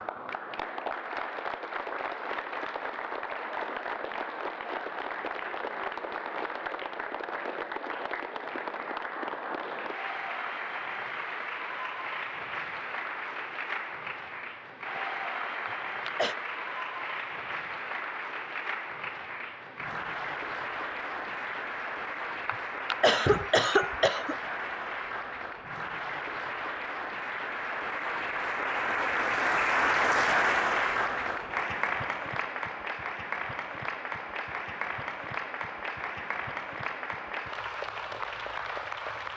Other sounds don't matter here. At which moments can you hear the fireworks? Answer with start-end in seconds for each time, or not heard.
not heard.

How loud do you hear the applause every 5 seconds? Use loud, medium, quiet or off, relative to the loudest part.
medium, medium, medium, medium, medium, loud, loud, medium.